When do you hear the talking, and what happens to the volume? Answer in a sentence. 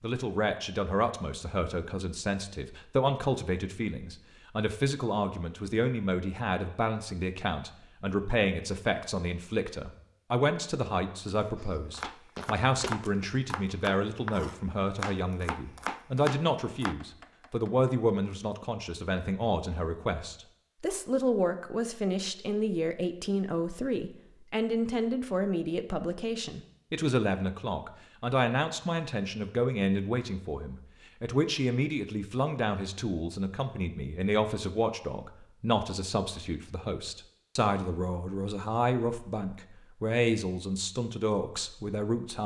You can hear the talking from 0.0 to 42.4 s, at a steady volume.